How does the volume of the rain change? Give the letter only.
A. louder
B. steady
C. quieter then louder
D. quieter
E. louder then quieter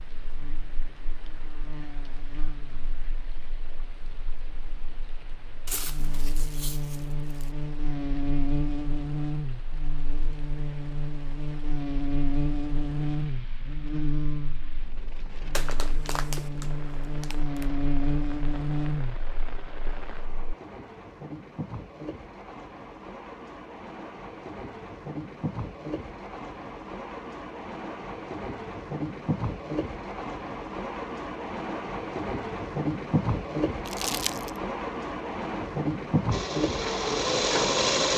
A.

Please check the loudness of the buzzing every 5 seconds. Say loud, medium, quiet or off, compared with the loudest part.
quiet, loud, loud, loud, off, off, off, off.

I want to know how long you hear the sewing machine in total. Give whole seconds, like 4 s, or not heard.
2 s.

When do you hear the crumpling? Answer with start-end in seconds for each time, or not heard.
5.7-7.5, 15.5-17.6, 33.9-34.5.